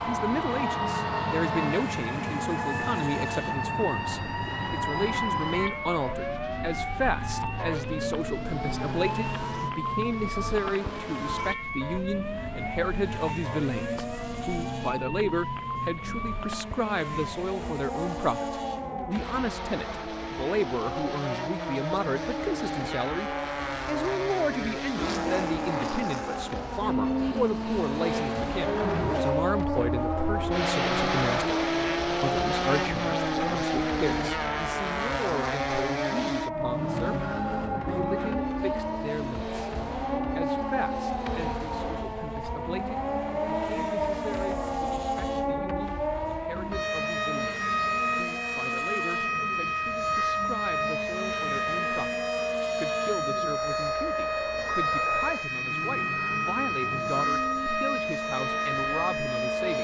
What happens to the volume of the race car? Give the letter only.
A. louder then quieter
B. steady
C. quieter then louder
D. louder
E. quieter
A.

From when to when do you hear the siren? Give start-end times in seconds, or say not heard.
0.0-59.8.